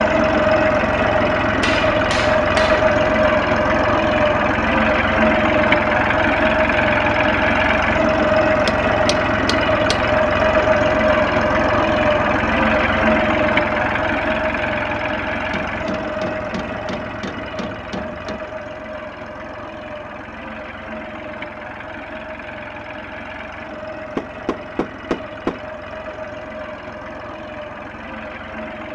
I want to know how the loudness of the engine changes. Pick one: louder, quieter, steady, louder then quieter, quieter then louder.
quieter.